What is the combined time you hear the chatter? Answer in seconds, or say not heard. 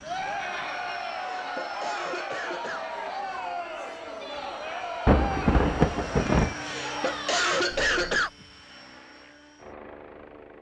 8 s.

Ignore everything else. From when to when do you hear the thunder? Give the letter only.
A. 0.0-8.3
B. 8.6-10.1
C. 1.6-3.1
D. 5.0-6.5
D.